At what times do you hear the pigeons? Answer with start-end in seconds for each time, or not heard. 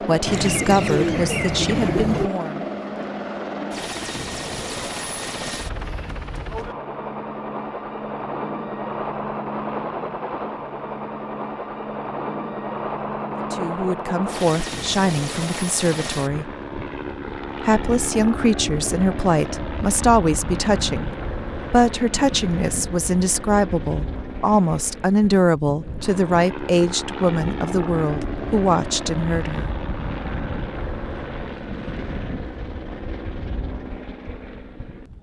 0.2-2.3.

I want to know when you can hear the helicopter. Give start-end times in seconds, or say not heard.
0.0-35.1.